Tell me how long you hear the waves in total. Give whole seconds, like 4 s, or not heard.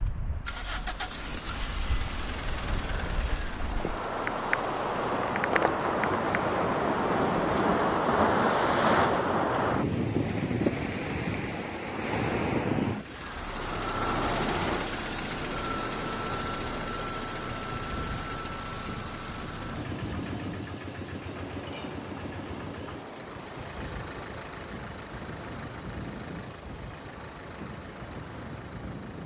29 s.